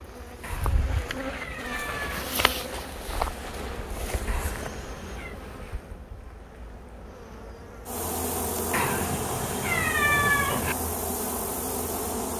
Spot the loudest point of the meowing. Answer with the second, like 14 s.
10 s.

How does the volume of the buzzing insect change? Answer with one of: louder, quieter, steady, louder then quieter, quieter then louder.
quieter then louder.